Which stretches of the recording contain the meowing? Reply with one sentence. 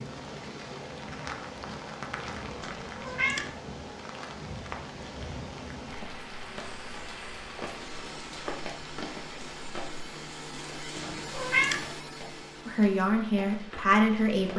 The meowing can be heard from 2.6 to 3.6 s and from 10.9 to 11.9 s.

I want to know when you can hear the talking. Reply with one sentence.
You can hear the talking from 12.7 to 14.5 s.